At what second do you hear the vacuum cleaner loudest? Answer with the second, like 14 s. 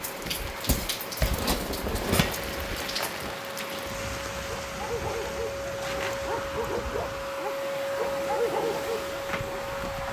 8 s.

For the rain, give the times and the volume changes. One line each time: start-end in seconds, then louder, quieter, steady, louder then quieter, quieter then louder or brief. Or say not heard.
0.0-10.0 quieter.